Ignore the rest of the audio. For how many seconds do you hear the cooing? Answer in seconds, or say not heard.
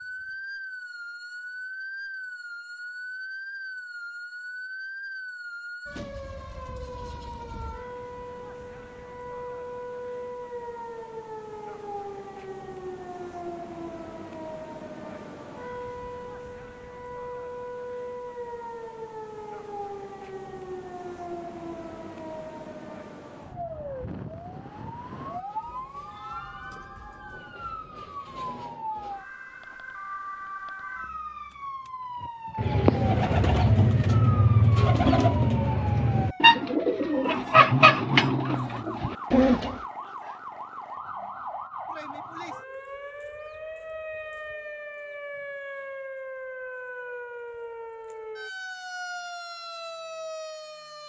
7 s.